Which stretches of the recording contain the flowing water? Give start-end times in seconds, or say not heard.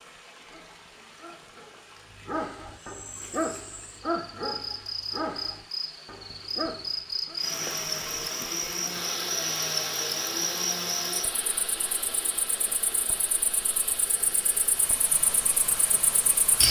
0.0-16.6.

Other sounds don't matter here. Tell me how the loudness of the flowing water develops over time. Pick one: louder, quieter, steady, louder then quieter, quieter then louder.
louder.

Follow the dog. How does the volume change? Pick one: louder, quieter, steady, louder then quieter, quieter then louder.
louder then quieter.